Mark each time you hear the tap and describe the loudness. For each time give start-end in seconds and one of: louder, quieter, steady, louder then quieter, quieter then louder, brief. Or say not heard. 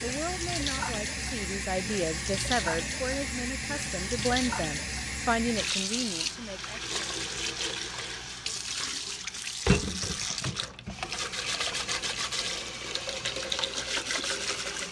0.0-14.8 steady.